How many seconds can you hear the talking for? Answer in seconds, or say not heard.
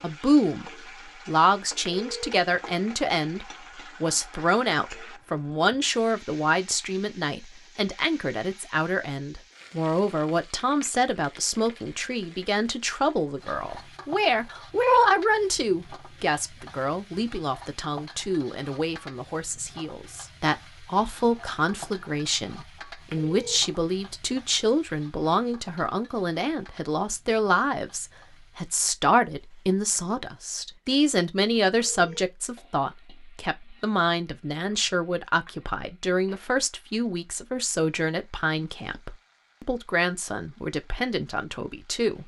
42 s.